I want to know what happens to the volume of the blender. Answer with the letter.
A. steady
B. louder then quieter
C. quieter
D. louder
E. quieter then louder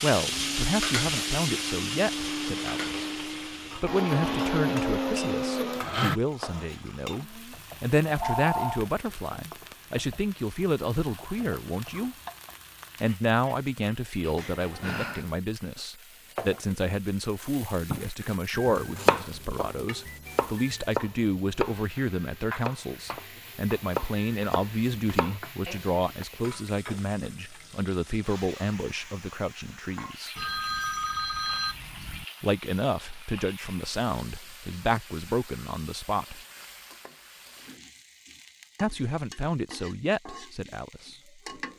D.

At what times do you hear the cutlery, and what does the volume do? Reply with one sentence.
You can't hear the cutlery here.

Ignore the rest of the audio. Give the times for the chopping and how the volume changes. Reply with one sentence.
The chopping can be heard from 17.9 to 26.2 s, getting quieter.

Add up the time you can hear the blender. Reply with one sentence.
The blender can be heard for 6 seconds in total.